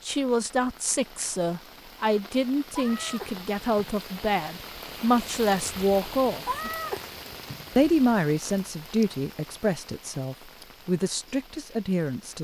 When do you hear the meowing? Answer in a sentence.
You can hear the meowing from 2.8 to 4.1 s and from 6.5 to 7.9 s.